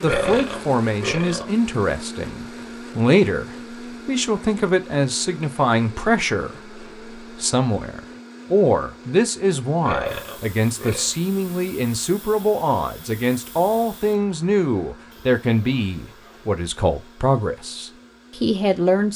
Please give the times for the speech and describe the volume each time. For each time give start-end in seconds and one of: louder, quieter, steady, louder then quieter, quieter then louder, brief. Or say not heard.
0.0-19.1 steady.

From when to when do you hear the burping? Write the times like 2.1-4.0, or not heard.
0.0-1.4, 9.8-11.2.